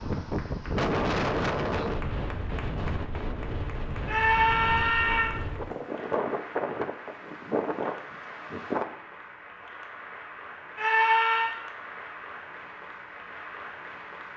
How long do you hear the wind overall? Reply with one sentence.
You can hear the wind for 9 seconds altogether.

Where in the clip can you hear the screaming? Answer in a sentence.
You can hear the screaming from 4.0 to 5.3 s and from 10.8 to 11.6 s.